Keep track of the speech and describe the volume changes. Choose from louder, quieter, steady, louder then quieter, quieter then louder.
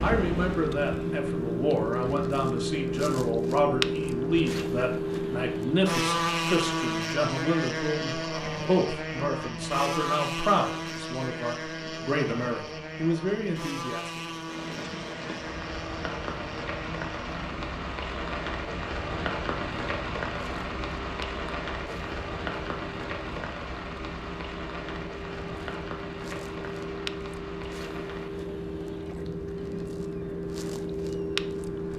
steady.